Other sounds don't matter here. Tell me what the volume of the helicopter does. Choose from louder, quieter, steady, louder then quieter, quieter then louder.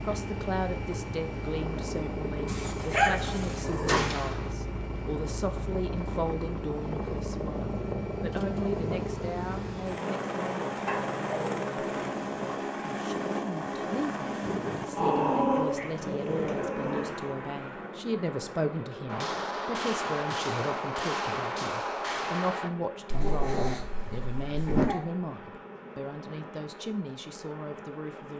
quieter.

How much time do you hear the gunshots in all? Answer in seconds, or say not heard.
4 s.